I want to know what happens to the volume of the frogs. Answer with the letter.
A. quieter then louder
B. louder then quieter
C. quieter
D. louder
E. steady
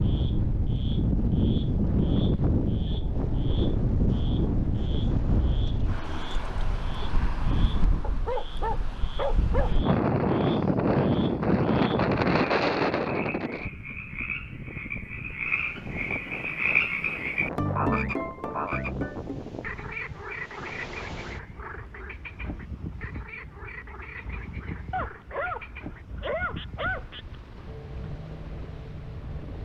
B.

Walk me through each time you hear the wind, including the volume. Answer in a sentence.
You can hear the wind from 0.0 to 29.6 s, getting quieter.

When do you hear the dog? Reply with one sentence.
The dog can be heard from 8.0 to 9.8 s and from 24.9 to 27.1 s.